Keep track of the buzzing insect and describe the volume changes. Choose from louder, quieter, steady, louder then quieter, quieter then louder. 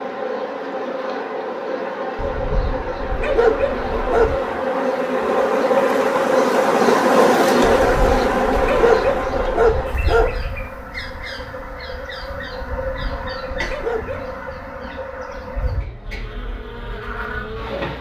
louder then quieter.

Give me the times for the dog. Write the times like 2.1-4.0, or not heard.
2.1-4.5, 7.7-10.4, 12.7-14.3.